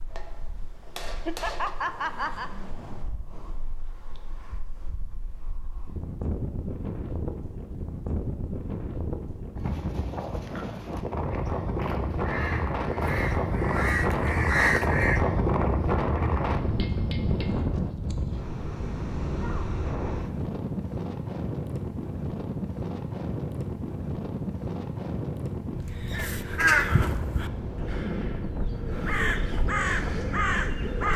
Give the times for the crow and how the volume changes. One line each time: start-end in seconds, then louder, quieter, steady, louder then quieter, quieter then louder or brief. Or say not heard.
10.2-15.2 louder
25.9-31.1 quieter then louder.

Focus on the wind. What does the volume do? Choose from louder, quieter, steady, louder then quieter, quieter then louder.
louder then quieter.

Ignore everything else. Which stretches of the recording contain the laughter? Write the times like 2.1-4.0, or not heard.
1.2-2.5.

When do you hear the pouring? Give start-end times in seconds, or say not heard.
not heard.